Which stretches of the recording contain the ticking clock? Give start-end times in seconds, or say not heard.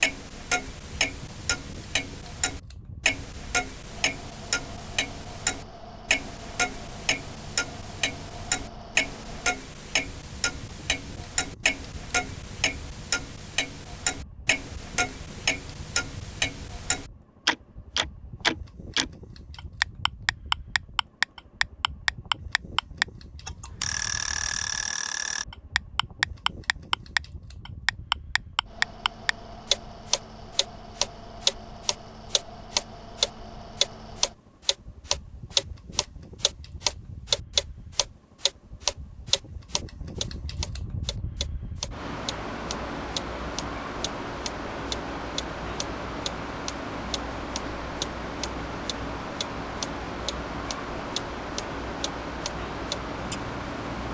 0.0-54.0.